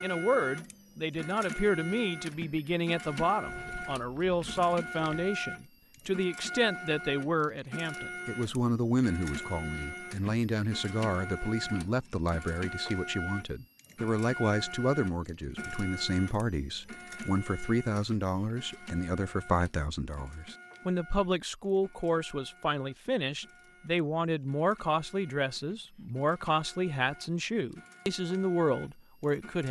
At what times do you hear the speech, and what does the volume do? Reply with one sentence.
The speech can be heard from 0.0 to 29.6 s, at a steady volume.